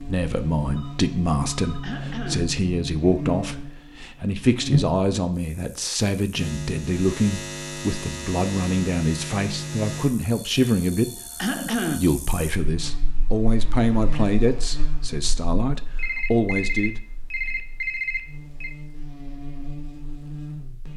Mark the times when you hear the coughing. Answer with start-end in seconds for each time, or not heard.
1.8-2.5, 11.3-12.1.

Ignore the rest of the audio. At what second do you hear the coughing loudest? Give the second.
12 s.